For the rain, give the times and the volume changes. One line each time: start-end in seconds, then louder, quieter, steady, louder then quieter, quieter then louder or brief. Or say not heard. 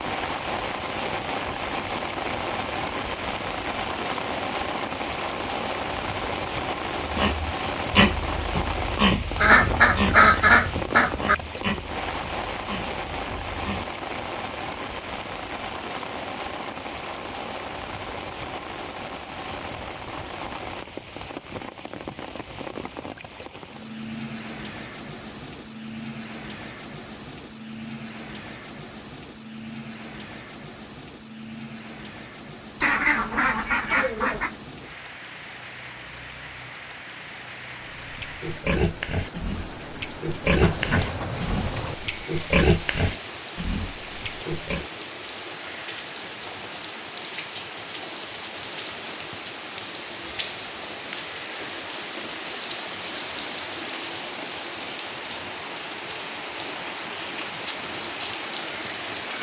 0.0-59.3 quieter then louder.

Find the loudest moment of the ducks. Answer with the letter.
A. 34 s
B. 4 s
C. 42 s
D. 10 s
D.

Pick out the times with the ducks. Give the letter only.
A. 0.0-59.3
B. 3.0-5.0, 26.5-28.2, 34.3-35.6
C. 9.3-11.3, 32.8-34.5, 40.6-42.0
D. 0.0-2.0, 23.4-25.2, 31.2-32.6
C.